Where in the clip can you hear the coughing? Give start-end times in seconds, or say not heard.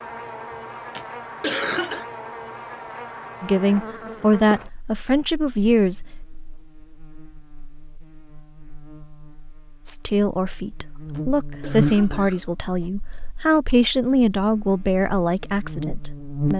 0.5-2.0, 10.7-13.2.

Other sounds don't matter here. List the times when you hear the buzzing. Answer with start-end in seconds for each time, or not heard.
0.0-16.5.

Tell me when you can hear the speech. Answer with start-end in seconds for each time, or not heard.
3.4-6.0, 9.8-16.5.